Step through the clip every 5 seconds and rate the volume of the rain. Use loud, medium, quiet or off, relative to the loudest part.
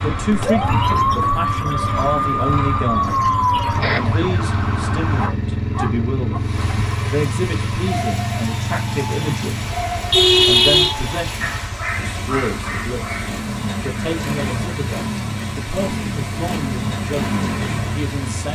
off, loud, loud, loud.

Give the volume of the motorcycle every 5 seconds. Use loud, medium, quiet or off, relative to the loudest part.
loud, loud, medium, loud.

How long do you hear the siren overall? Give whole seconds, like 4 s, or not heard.
5 s.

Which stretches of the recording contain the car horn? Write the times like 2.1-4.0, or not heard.
9.6-11.4.